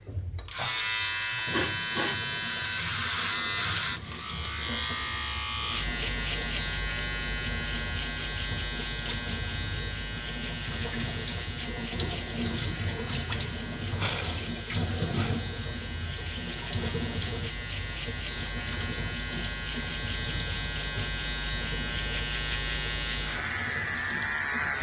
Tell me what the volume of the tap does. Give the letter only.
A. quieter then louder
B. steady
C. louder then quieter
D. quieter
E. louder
C.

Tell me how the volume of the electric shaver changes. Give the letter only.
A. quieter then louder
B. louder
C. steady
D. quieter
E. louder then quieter
A.